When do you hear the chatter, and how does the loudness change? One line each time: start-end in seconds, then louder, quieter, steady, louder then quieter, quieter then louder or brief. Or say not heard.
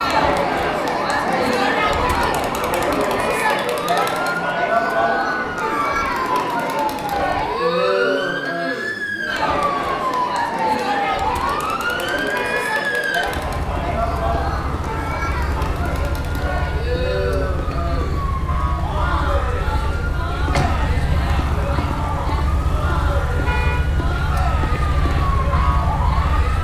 0.0-26.5 quieter.